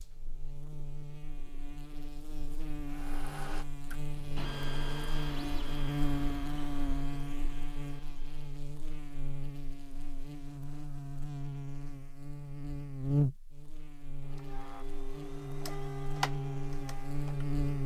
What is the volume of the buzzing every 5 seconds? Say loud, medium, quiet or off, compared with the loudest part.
medium, loud, loud, loud.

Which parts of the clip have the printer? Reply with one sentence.
The printer can be heard from 2.9 to 8.7 s and from 14.2 to 17.8 s.